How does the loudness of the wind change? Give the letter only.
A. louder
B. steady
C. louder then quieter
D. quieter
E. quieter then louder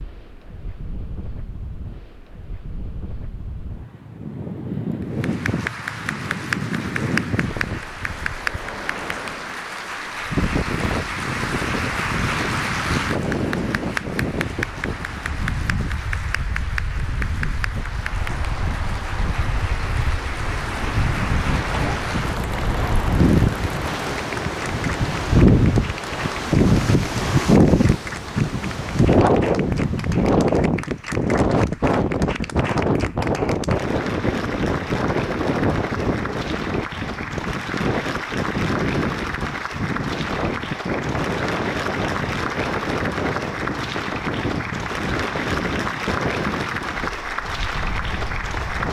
C.